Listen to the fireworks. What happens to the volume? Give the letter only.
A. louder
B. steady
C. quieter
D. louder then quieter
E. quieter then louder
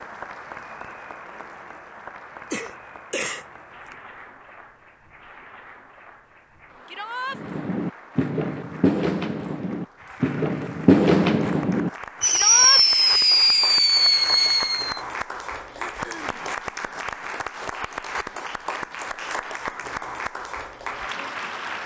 A.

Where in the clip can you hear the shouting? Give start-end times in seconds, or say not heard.
6.8-7.4, 12.3-12.8.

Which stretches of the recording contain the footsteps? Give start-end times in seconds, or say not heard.
not heard.